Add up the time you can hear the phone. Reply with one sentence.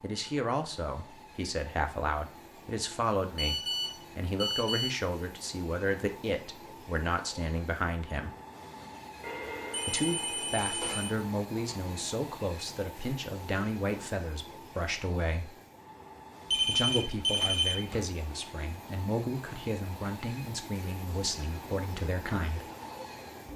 You can hear the phone for 5 seconds altogether.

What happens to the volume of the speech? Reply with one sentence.
The volume of the speech stays about the same.